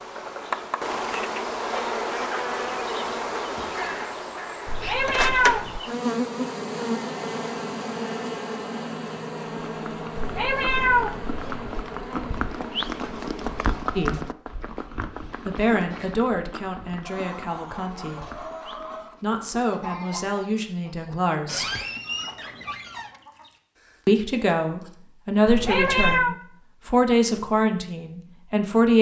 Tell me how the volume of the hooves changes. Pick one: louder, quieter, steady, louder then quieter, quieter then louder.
louder then quieter.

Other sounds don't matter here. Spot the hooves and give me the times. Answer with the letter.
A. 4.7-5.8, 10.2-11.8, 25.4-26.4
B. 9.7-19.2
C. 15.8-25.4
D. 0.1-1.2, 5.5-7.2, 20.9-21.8
B.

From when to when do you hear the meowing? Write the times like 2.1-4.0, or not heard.
4.7-5.8, 10.2-11.8, 25.4-26.4.